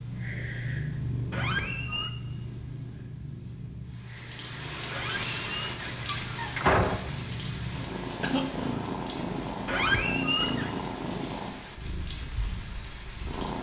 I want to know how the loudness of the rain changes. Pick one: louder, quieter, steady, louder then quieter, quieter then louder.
quieter.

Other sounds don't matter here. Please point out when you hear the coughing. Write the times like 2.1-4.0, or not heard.
8.2-8.7.